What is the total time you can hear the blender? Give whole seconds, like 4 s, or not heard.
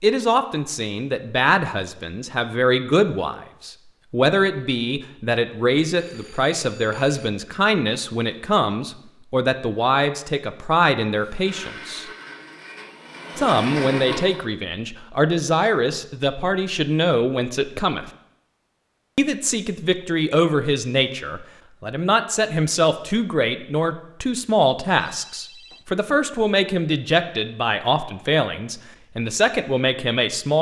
3 s.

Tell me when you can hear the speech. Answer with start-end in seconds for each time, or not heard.
0.0-12.1, 13.3-18.1, 19.1-30.5.